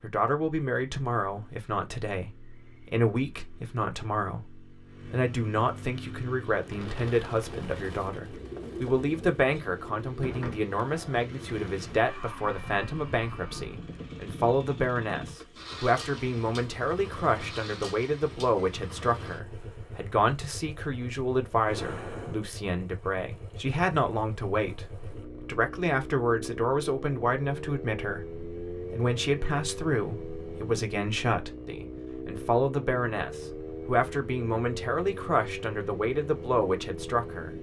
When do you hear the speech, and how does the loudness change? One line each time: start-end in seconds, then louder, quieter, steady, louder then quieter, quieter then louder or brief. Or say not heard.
0.0-37.5 steady.